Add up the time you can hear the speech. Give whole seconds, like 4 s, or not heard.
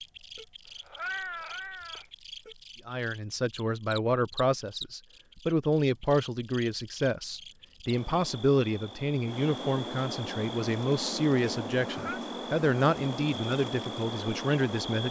12 s.